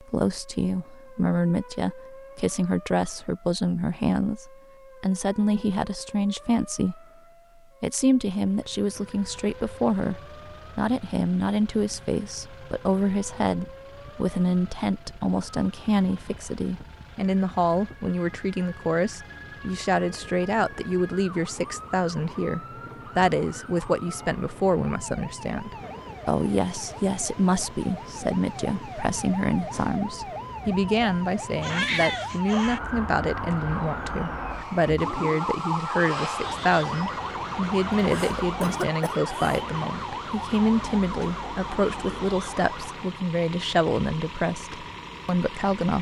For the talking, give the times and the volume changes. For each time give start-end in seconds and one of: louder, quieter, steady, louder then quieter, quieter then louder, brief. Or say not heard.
0.0-7.0 steady
7.8-45.9 steady.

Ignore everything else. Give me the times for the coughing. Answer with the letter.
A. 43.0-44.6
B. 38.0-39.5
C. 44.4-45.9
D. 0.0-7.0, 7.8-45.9
B.